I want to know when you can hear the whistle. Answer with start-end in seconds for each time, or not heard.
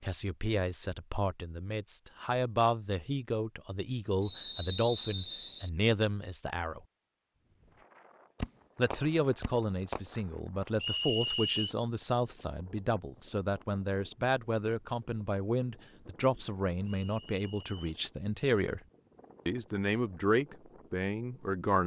4.2-5.7, 10.8-11.8, 16.9-17.9.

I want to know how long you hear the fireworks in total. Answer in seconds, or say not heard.
2 s.